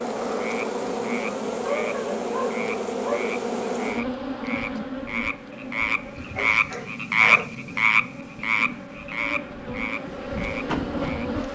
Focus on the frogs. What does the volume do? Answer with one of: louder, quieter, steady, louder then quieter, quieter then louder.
louder then quieter.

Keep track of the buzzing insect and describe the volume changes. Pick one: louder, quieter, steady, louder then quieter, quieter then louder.
quieter then louder.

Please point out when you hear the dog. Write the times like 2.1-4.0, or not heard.
1.6-3.4, 6.2-7.5.